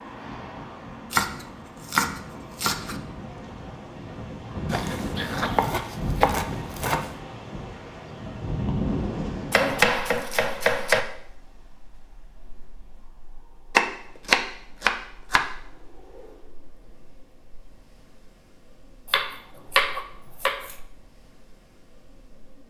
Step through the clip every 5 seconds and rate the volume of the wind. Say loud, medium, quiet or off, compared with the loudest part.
medium, loud, quiet, quiet, quiet.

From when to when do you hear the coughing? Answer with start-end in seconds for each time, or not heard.
4.7-6.4.